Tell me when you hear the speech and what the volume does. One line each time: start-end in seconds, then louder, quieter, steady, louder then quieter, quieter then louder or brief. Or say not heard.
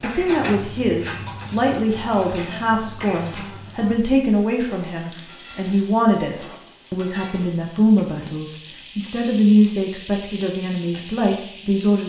0.0-12.0 steady.